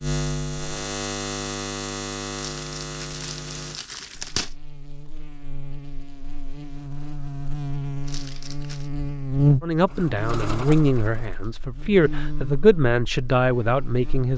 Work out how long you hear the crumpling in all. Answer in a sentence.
The crumpling can be heard for 3 seconds in total.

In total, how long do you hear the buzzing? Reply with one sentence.
The buzzing can be heard for 14 seconds in total.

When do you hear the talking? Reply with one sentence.
You can hear the talking from 9.6 to 14.3 s.